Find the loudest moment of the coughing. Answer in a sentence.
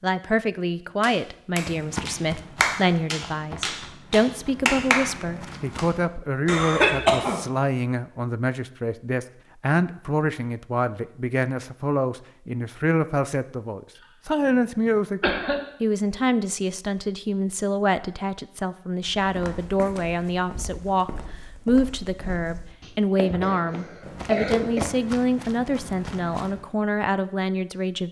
The volume of the coughing peaks at 7 seconds.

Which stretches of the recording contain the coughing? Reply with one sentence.
The coughing can be heard from 6.5 to 7.4 s, from 14.5 to 15.6 s and from 22.8 to 24.8 s.